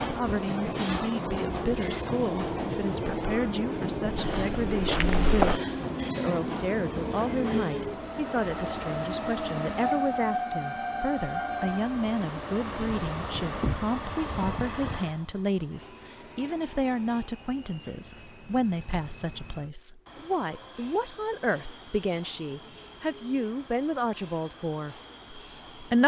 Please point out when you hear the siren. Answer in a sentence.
The siren can't be heard in this clip.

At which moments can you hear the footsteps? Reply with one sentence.
You can hear the footsteps from 4.1 to 5.6 s.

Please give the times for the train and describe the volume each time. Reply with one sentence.
You can hear the train from 0.0 to 26.0 s, getting quieter.